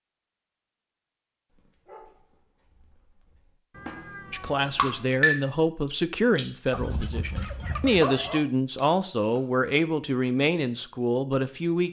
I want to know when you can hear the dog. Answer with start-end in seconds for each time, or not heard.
1.5-3.5, 6.7-8.4.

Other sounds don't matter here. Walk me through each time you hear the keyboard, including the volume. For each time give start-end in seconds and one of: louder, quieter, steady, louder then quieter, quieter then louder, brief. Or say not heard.
not heard.